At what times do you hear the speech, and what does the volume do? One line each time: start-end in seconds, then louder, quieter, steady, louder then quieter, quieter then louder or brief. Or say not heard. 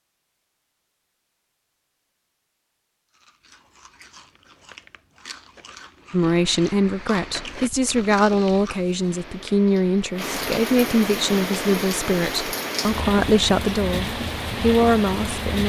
6.1-15.6 steady.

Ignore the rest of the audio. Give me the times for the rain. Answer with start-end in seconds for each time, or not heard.
6.3-15.6.